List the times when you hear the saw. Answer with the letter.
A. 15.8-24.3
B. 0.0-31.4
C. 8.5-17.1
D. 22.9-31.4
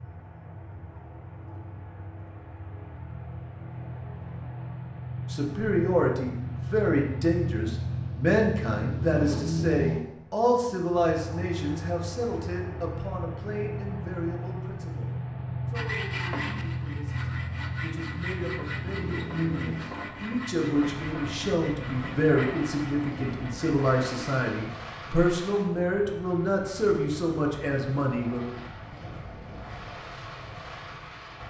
A.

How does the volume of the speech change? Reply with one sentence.
The volume of the speech goes down, then up.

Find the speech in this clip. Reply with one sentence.
The speech can be heard from 5.3 to 28.4 s.